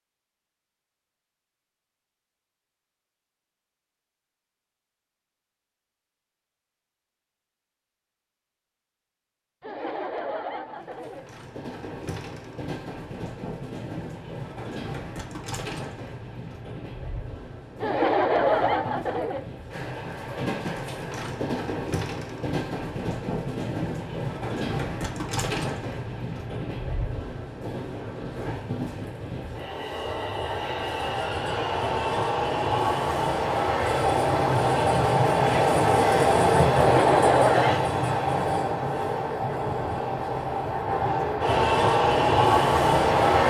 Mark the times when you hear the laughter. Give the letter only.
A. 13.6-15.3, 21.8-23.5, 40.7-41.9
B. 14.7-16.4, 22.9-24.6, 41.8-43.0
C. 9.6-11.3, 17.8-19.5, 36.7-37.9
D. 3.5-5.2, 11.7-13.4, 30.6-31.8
C.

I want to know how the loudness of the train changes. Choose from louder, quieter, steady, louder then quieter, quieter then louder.
louder.